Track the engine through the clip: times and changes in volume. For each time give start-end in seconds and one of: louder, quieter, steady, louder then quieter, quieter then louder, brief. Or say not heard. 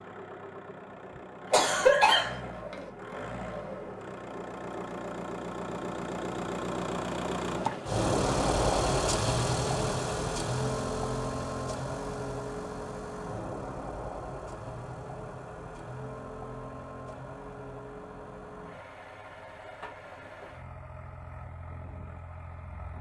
0.0-22.9 louder then quieter.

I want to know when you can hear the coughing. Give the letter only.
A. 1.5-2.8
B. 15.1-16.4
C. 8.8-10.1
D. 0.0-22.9
A.